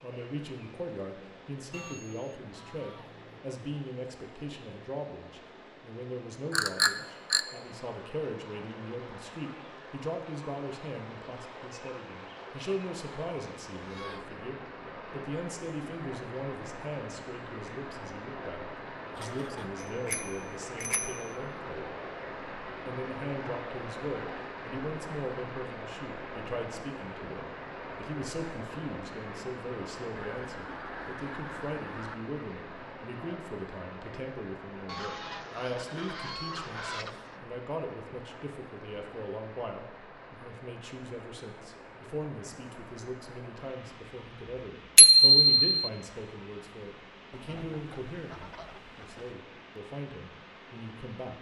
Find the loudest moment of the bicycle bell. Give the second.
45 s.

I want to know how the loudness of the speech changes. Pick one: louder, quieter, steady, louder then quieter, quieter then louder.
steady.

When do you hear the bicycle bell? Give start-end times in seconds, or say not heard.
6.5-7.4, 19.8-21.2, 45.0-45.6.